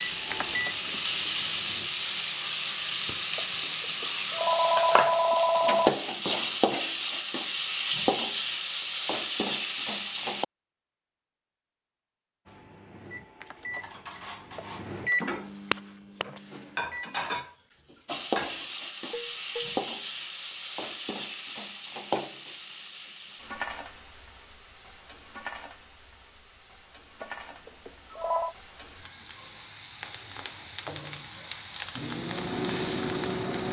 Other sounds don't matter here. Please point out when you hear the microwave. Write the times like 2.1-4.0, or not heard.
0.0-1.9, 12.4-17.3, 31.9-33.6.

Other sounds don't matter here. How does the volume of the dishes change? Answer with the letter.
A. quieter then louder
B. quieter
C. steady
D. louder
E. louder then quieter
D.